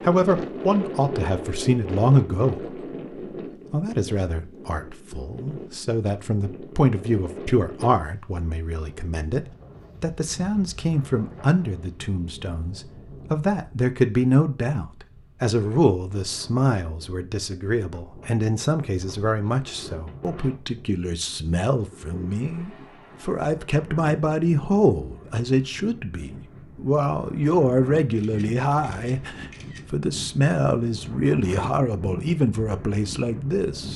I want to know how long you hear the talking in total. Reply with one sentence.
You can hear the talking for 33 seconds altogether.